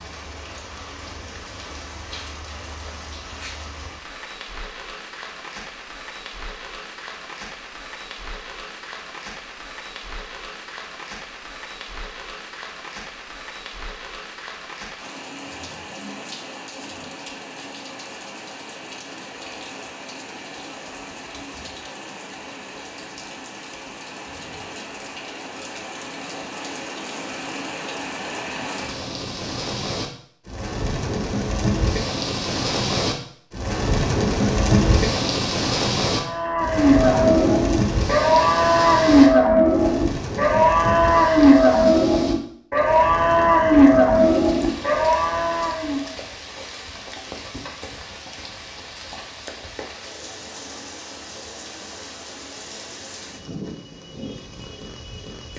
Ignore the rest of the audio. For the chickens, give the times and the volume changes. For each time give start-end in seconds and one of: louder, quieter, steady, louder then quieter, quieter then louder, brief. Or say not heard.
not heard.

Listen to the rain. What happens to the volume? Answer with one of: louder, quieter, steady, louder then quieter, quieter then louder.
louder then quieter.